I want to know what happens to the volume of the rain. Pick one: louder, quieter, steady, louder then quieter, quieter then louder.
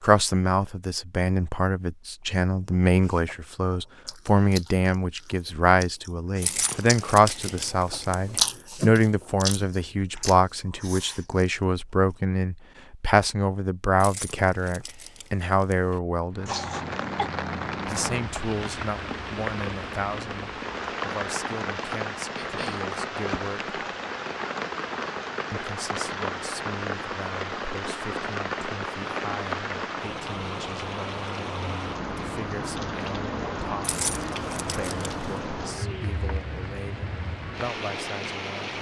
steady.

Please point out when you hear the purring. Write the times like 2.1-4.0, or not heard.
not heard.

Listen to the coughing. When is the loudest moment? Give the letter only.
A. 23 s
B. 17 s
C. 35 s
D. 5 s
B.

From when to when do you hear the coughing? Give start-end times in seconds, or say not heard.
16.4-17.3, 22.4-22.9.